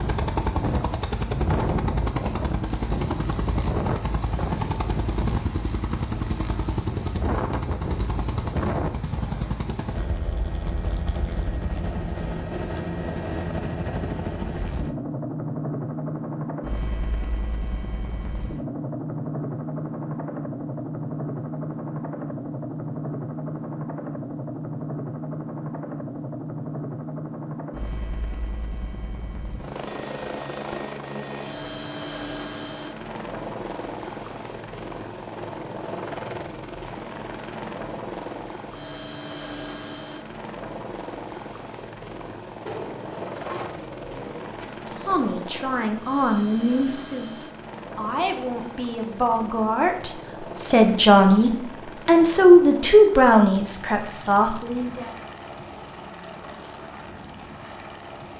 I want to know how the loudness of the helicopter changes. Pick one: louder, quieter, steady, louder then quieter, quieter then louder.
quieter.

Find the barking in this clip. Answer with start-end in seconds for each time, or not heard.
42.6-44.6.